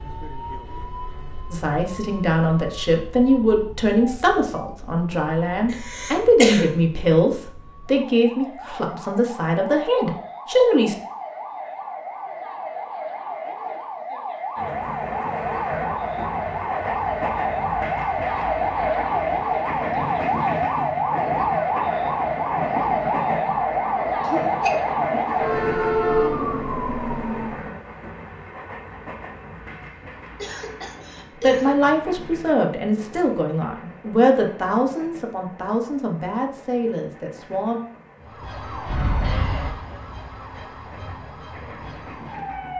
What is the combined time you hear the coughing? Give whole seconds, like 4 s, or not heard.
3 s.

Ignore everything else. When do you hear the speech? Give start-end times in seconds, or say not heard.
1.5-10.9, 31.4-37.8.